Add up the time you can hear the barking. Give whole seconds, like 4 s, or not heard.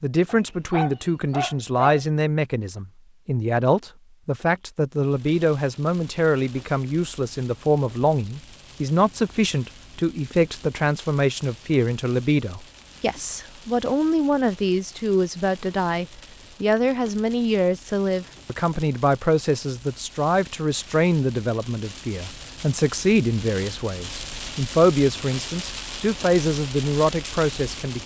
2 s.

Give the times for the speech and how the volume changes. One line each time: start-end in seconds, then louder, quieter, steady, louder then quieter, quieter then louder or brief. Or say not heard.
0.0-28.0 steady.